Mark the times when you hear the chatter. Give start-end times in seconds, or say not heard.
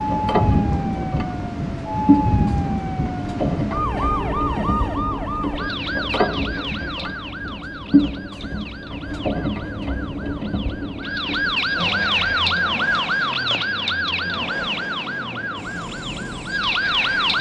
not heard.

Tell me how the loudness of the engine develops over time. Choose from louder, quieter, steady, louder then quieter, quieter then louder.
quieter.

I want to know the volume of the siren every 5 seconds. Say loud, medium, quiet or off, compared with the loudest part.
loud, medium, loud, loud.